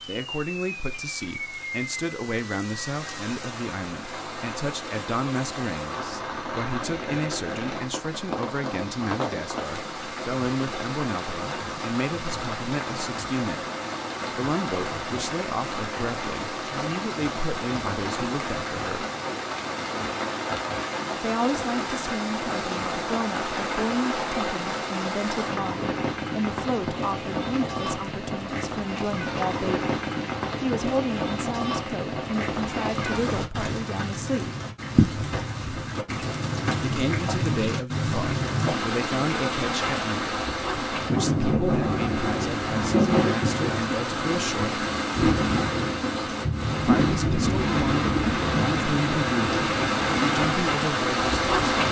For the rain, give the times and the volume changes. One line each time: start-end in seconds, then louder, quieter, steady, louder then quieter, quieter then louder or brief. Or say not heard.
0.0-51.8 louder.